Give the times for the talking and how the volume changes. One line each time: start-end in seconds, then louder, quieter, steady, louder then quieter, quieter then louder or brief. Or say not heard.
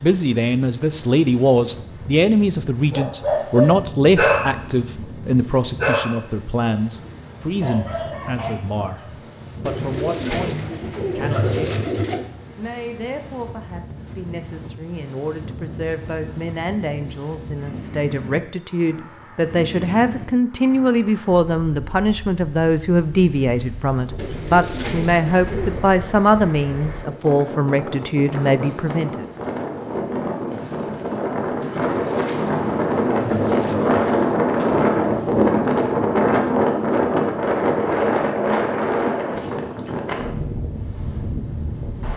0.0-29.2 quieter then louder.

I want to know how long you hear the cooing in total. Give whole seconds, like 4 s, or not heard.
7 s.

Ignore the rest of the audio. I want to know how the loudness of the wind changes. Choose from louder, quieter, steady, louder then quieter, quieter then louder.
louder.